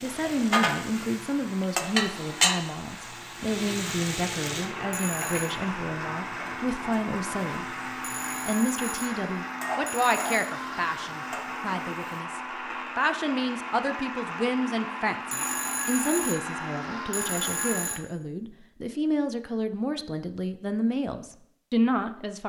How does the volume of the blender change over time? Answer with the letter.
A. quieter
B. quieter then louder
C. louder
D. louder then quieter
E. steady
C.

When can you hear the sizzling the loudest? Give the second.
2 s.